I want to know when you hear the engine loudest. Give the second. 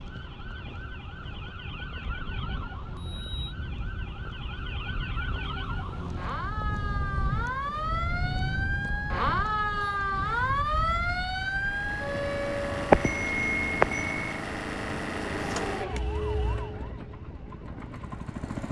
15 s.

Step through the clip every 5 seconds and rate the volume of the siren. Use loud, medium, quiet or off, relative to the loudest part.
quiet, loud, loud, medium.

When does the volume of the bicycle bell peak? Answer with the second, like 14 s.
13 s.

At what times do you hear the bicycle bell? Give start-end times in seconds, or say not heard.
2.0-3.5, 8.9-9.8, 12.9-14.3.